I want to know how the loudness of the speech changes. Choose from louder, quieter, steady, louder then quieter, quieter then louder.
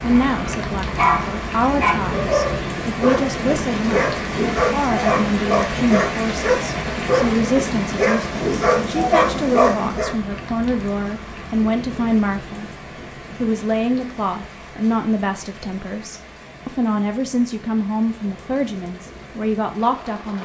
steady.